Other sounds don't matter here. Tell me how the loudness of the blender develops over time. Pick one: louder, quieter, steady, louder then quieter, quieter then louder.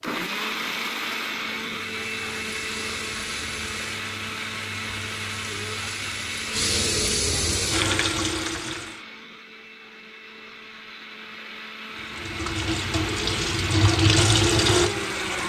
quieter then louder.